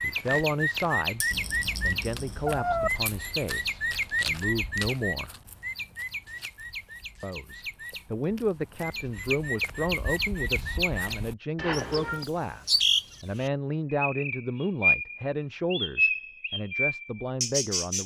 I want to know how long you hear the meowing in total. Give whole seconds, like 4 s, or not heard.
2 s.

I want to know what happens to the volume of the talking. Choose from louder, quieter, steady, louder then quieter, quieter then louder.
steady.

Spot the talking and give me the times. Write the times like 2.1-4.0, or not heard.
0.0-5.3, 7.2-18.0.